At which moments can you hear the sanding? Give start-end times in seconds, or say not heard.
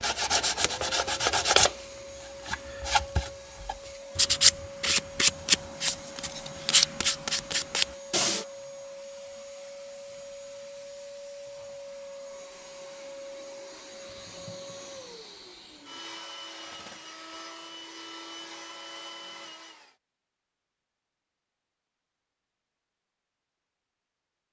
0.0-1.9, 2.5-8.4.